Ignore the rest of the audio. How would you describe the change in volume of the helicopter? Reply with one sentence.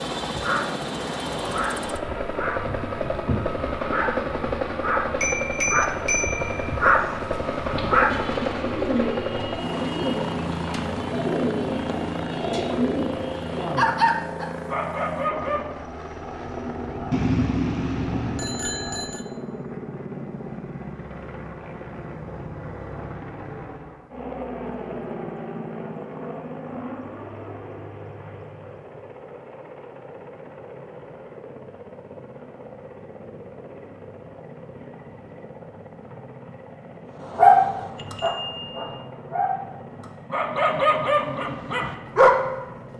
The volume of the helicopter goes down.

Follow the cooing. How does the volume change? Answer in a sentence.
The loudness of the cooing stays about the same.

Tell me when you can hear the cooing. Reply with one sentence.
You can hear the cooing from 7.7 to 13.8 s.